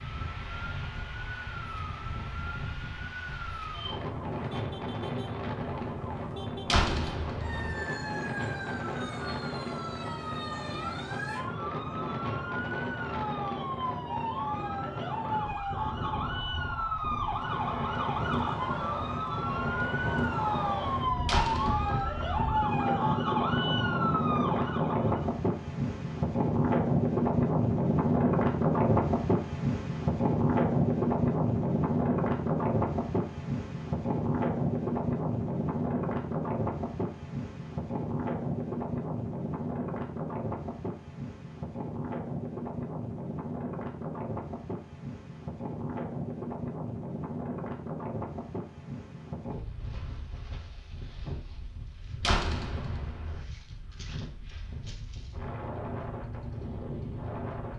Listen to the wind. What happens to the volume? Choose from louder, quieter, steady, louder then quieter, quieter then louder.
louder then quieter.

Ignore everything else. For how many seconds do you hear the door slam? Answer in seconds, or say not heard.
3 s.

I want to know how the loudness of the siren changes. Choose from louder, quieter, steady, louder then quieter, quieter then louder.
louder.